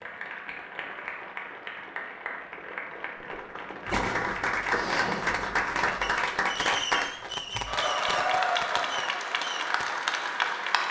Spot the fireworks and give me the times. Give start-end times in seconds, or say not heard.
3.2-10.0.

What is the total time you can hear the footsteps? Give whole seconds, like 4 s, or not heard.
not heard.